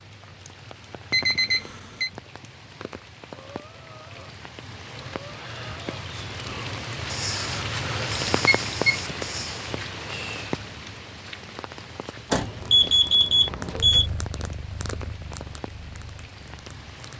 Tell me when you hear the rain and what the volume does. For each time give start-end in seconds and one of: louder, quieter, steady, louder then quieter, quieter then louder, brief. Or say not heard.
0.0-17.1 louder then quieter.